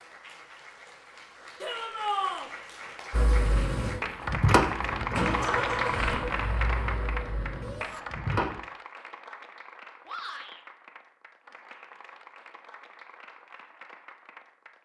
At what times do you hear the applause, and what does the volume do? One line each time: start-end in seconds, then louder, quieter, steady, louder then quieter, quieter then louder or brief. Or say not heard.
0.0-14.8 louder then quieter.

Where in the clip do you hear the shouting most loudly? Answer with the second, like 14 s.
2 s.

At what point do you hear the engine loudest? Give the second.
5 s.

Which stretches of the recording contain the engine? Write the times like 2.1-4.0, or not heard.
3.1-8.6.